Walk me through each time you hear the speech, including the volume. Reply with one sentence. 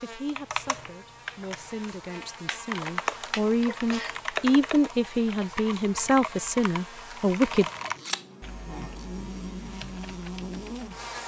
You can hear the speech from 0.0 to 7.7 s, getting louder.